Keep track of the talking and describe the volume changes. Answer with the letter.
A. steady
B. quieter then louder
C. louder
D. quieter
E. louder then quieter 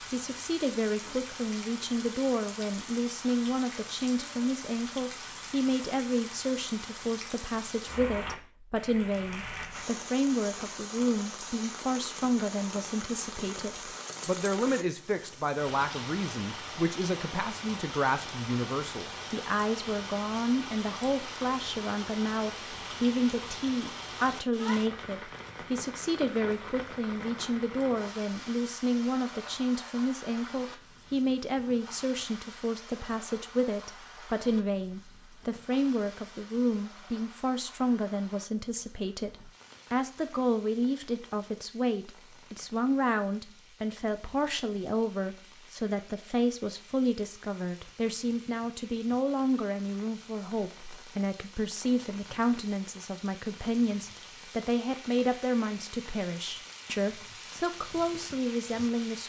A.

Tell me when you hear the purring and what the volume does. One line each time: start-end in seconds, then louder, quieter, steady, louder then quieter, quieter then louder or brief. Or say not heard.
not heard.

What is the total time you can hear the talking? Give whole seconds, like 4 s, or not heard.
59 s.